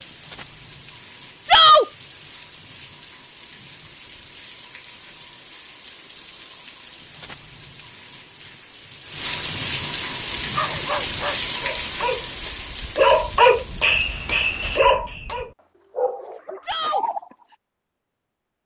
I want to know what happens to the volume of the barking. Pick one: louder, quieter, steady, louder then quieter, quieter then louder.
louder then quieter.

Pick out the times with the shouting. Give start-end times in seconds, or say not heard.
1.4-1.9, 16.6-17.1.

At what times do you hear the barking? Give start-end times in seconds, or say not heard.
10.4-17.4.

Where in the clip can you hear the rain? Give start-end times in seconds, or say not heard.
0.0-14.8.